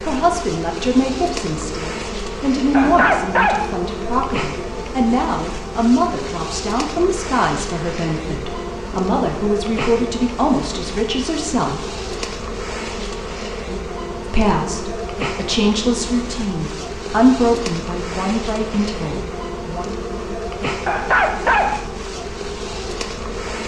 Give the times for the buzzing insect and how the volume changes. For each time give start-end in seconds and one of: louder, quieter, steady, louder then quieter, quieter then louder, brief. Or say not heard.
0.0-23.6 steady.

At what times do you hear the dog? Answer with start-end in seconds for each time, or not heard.
2.7-3.8, 20.9-21.9.